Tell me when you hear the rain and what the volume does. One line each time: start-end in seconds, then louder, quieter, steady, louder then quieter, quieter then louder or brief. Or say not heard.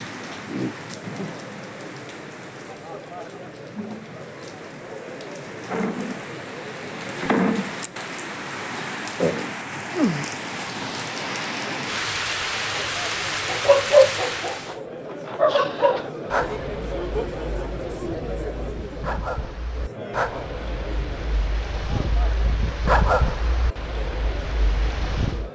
0.0-14.8 louder.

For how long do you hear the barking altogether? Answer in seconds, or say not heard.
12 s.